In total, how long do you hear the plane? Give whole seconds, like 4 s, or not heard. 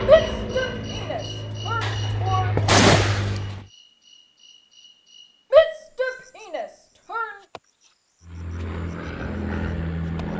6 s.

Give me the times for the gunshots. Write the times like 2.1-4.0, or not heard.
1.8-3.5.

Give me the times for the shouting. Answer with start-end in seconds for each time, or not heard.
0.1-2.6, 5.5-7.3.